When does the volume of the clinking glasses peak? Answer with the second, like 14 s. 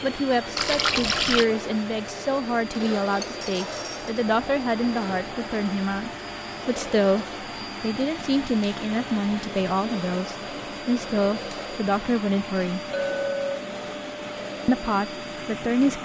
13 s.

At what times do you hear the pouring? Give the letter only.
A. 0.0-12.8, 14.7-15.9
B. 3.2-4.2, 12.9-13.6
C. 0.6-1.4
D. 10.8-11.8
C.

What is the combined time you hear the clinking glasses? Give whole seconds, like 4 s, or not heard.
2 s.